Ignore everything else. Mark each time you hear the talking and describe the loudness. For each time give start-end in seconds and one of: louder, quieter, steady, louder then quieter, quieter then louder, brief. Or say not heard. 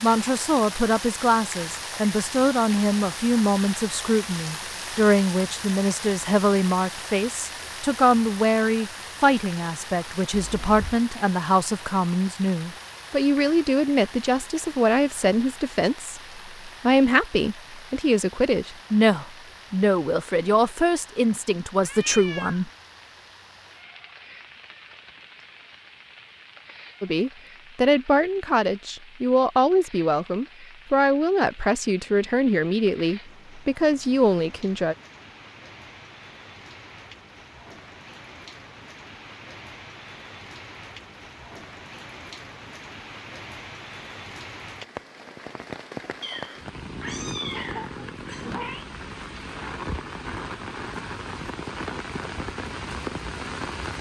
0.0-22.7 steady
27.0-35.0 steady.